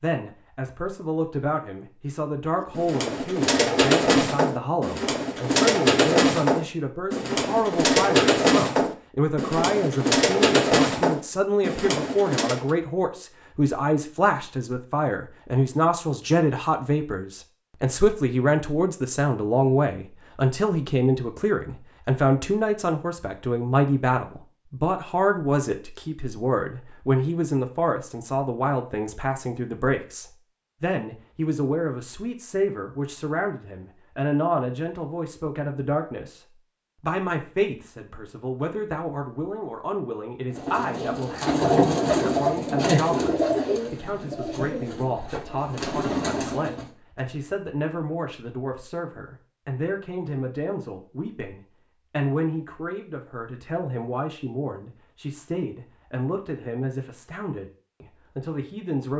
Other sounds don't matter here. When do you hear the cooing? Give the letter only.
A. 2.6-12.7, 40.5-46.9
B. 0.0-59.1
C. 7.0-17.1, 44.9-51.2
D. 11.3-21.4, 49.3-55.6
A.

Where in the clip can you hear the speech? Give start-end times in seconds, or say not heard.
0.0-59.1.